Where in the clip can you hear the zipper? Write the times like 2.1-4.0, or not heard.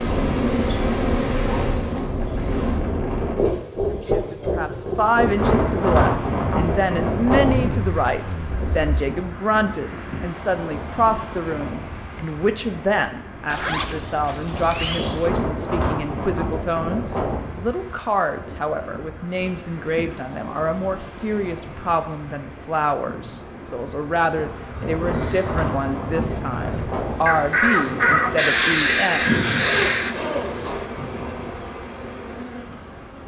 7.4-9.1, 13.4-15.3, 29.6-30.9.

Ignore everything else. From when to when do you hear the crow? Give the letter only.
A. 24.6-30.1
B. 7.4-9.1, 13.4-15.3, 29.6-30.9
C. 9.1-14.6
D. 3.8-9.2
A.